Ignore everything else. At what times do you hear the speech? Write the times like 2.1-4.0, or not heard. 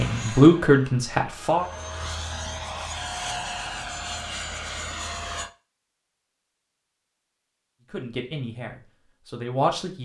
0.0-1.6, 7.9-10.0.